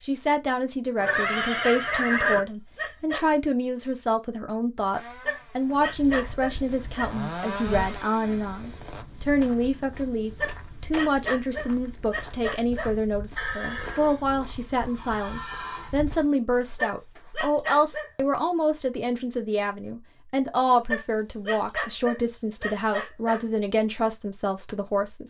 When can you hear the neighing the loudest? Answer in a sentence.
The volume of the neighing peaks at 2 seconds.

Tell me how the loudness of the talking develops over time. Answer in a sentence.
The loudness of the talking stays about the same.